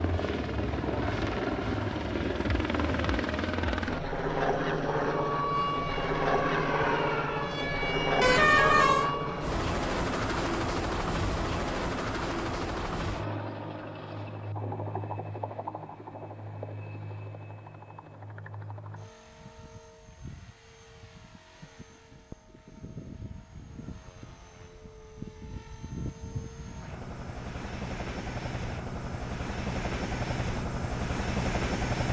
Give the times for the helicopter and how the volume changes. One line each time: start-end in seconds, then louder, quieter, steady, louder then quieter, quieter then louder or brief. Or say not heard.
0.0-32.0 quieter then louder.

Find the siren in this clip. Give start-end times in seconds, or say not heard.
5.0-9.5.